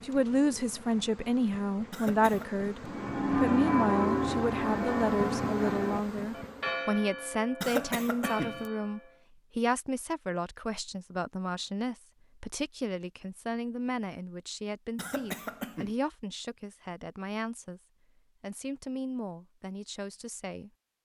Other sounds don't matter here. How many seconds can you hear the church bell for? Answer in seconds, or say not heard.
6 s.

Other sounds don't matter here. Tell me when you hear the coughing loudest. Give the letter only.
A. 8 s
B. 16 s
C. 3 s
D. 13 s
A.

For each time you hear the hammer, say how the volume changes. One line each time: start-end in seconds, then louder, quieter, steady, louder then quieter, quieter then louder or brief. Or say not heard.
not heard.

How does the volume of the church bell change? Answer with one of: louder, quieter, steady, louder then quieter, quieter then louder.
quieter.